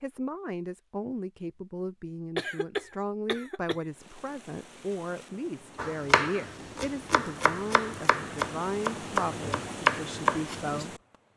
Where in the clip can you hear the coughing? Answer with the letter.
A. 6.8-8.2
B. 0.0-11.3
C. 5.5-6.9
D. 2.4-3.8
D.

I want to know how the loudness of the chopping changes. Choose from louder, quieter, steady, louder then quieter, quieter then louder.
louder.